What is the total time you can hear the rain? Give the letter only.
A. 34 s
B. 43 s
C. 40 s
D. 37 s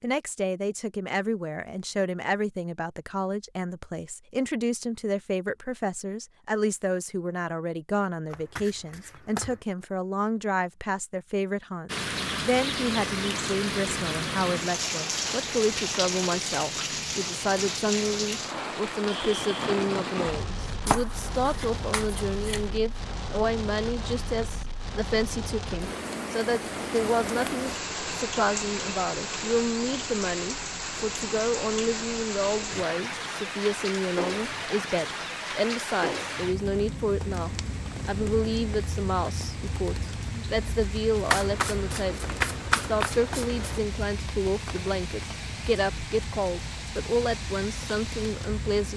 D.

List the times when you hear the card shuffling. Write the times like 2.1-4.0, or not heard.
8.3-9.6, 20.8-22.7, 41.2-43.8.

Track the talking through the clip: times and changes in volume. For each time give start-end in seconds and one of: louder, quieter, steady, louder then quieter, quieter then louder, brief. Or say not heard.
0.0-48.9 steady.